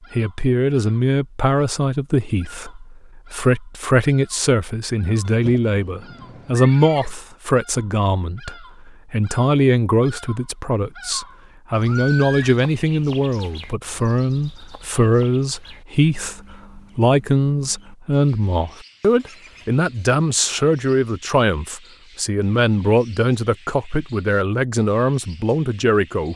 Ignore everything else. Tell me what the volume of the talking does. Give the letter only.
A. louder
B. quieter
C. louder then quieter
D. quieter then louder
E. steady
E.